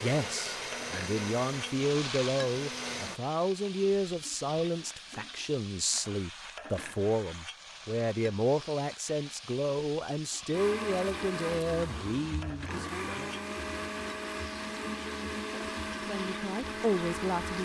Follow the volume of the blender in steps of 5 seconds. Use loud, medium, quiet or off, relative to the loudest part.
loud, off, loud, loud.